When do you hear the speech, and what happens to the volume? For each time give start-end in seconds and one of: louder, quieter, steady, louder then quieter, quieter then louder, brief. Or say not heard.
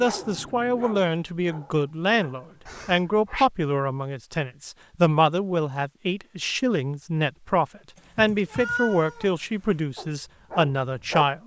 0.0-11.4 steady.